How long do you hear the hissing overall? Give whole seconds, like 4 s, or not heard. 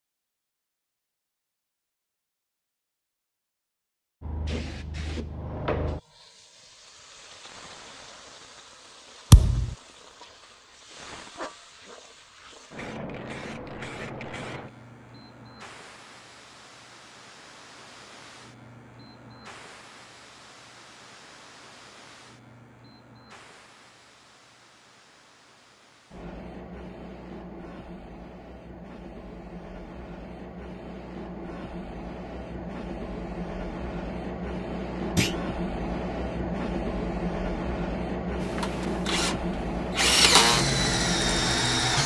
38 s.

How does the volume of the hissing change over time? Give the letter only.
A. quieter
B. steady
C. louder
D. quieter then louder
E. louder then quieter
D.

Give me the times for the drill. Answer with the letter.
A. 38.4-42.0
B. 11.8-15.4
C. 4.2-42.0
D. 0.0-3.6
A.